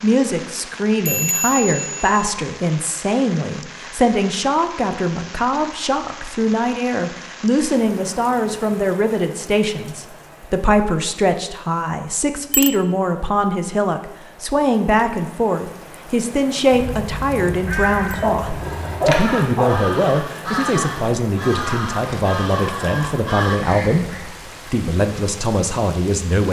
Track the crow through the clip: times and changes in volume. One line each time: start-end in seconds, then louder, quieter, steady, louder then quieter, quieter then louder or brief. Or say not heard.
16.7-24.2 steady.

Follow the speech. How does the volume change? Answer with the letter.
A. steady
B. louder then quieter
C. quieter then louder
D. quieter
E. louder
A.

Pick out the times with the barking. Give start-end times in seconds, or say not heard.
18.2-19.8.